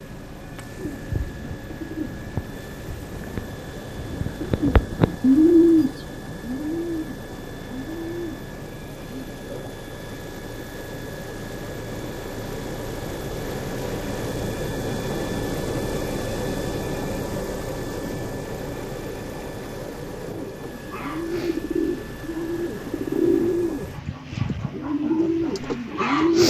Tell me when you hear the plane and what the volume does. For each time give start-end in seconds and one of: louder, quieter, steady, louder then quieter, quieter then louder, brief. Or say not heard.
0.0-26.4 louder then quieter.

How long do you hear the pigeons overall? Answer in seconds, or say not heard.
15 s.